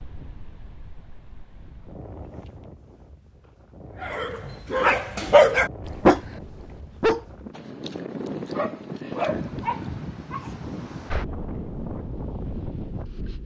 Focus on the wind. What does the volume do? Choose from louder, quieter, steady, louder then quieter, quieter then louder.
louder.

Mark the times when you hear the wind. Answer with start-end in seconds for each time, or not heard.
0.0-13.4.